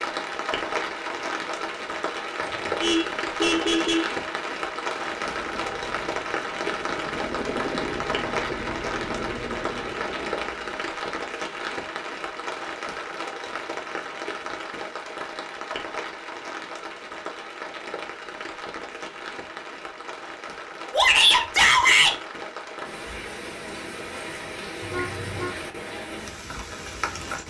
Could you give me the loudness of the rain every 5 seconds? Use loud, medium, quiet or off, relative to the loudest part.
loud, loud, loud, medium, medium, medium.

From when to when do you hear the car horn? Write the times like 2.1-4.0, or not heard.
2.4-4.2, 24.8-25.6.